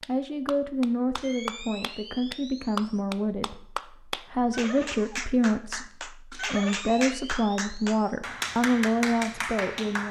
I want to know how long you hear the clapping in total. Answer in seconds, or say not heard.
10 s.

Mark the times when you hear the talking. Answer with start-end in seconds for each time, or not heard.
0.1-10.0.